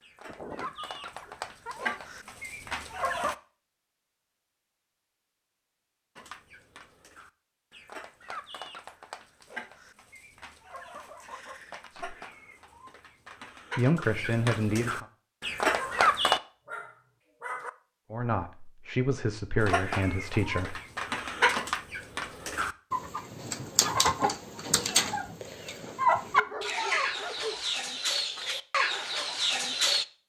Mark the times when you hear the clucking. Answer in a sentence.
You can hear the clucking from 0.0 to 3.4 s, from 6.2 to 16.4 s and from 19.6 to 30.1 s.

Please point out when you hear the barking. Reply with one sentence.
The barking can be heard from 0.2 to 2.1 s, from 15.7 to 17.7 s and from 26.2 to 27.8 s.